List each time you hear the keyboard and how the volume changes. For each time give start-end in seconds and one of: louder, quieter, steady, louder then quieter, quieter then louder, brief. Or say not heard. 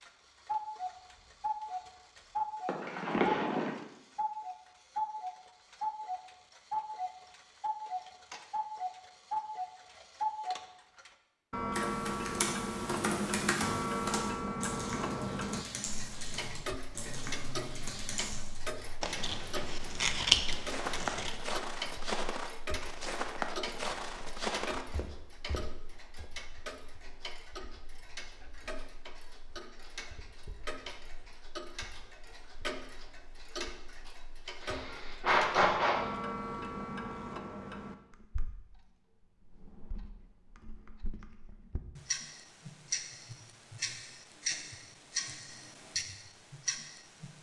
11.7-18.6 quieter.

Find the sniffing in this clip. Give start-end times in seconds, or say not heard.
2.6-3.7, 34.6-36.0.